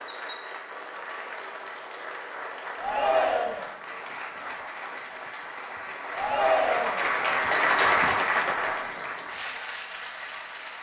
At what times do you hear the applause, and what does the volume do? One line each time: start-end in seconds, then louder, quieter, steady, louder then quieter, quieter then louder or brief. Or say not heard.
0.0-10.7 louder then quieter.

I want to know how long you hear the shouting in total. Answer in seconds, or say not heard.
2 s.